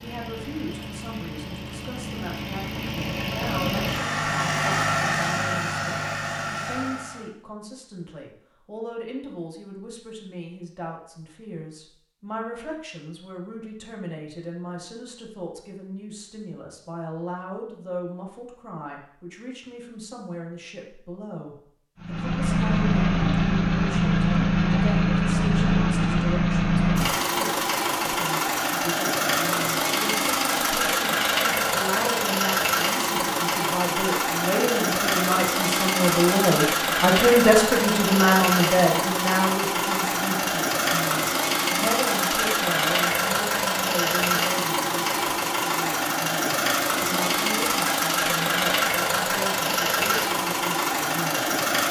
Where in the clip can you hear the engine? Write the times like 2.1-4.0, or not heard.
0.0-7.3, 22.0-51.8.